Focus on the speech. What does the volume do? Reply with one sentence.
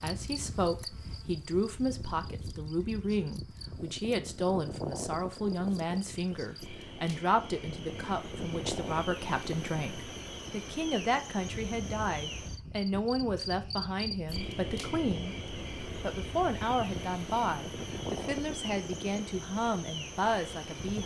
The loudness of the speech stays about the same.